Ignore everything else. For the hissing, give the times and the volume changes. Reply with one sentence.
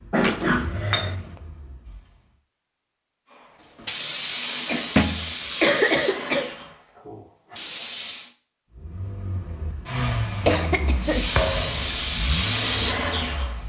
You can hear the hissing from 3.8 to 8.3 s, getting quieter then louder; and briefly from 11.0 to 13.5 s.